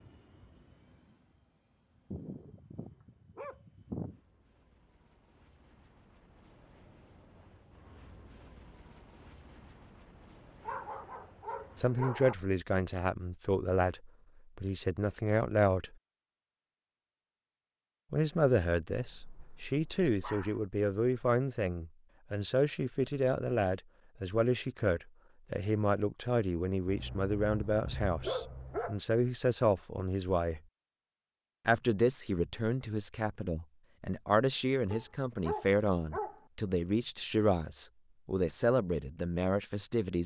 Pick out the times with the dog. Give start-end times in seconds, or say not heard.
2.1-4.2, 10.6-12.3, 18.9-20.6, 26.9-29.0, 34.9-36.5.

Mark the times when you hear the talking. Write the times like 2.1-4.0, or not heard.
11.8-15.9, 18.1-30.6, 31.6-40.2.